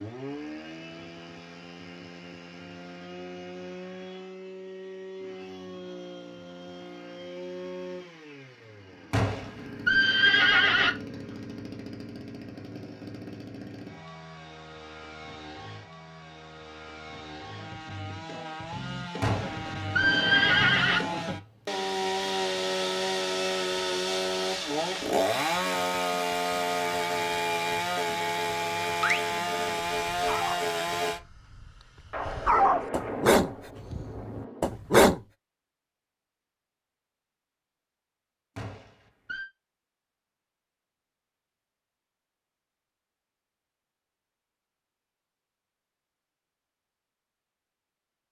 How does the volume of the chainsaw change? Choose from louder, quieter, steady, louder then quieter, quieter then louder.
louder.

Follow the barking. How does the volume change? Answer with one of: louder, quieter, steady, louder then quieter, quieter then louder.
louder then quieter.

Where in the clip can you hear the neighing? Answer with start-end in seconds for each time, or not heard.
9.1-10.9, 19.2-21.0, 38.5-39.5.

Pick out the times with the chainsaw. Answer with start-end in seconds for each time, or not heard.
0.0-31.2.